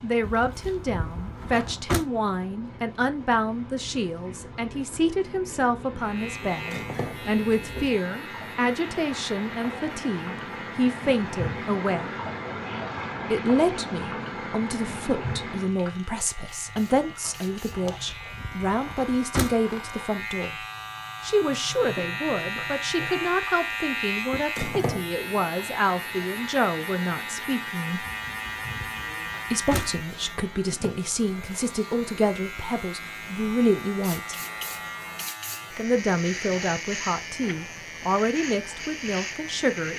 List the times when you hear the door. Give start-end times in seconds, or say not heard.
0.2-2.0, 17.9-19.6, 28.1-29.9.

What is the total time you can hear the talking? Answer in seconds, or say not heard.
35 s.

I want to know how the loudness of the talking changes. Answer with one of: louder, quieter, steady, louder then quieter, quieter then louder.
steady.